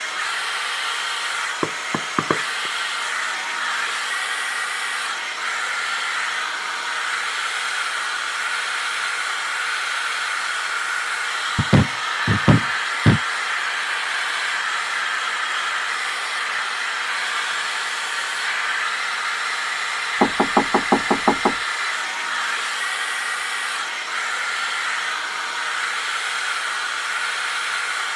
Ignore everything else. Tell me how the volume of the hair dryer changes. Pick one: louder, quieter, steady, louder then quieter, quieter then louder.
steady.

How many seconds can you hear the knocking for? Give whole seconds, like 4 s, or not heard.
4 s.